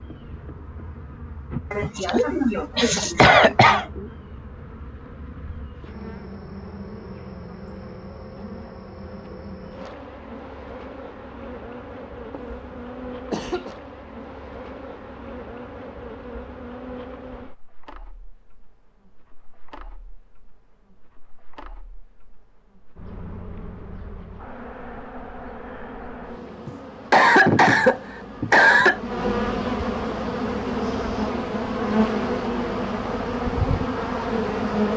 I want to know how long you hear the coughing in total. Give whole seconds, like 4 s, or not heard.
6 s.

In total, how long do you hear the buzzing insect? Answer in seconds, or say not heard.
35 s.